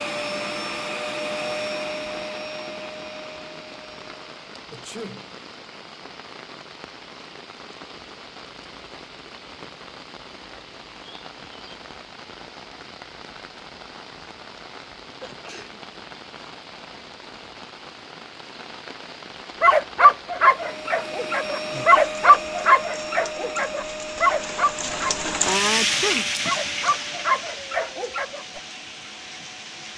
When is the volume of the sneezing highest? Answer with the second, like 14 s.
26 s.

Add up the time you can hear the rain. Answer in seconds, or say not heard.
30 s.